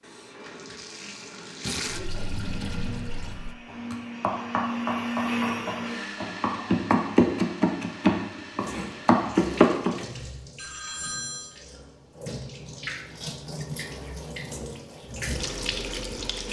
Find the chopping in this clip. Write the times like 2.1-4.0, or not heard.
3.9-10.0.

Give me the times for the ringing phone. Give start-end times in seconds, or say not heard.
10.6-11.6.